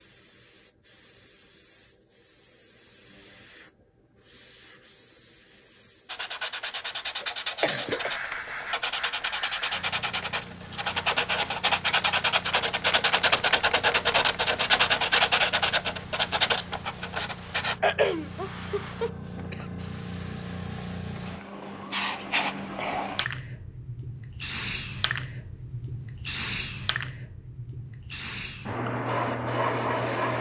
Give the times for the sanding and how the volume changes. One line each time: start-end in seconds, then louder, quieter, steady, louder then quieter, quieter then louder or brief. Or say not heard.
6.0-17.8 louder.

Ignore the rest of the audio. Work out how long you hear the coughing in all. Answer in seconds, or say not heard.
3 s.